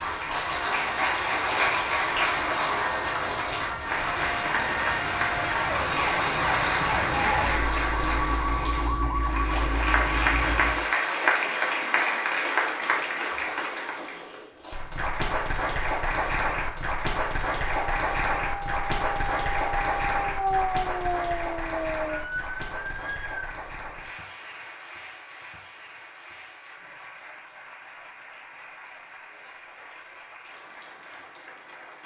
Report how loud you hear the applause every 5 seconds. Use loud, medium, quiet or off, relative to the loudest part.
loud, loud, loud, loud, medium, quiet, quiet.